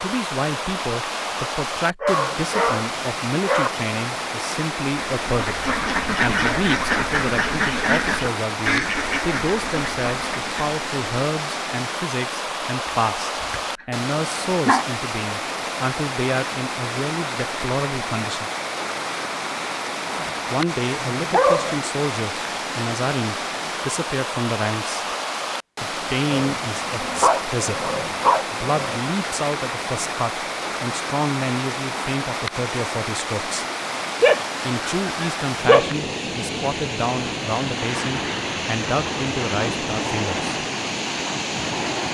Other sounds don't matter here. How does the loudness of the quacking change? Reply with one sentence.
The volume of the quacking goes down.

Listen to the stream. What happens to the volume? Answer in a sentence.
The volume of the stream stays about the same.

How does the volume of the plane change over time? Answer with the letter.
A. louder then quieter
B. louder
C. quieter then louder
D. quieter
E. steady
E.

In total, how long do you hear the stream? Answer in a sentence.
You can hear the stream for 42 seconds altogether.